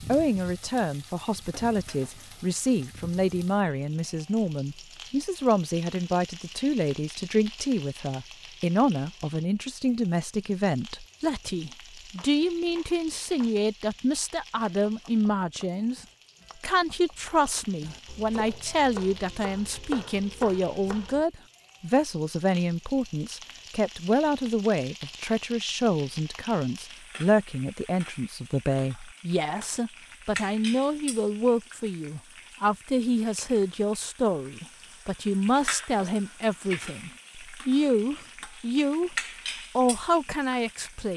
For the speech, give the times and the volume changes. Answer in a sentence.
The speech can be heard from 0.1 to 39.1 s, at a steady volume; and briefly from 39.8 to 41.1 s.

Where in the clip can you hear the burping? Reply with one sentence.
The burping can't be heard in this clip.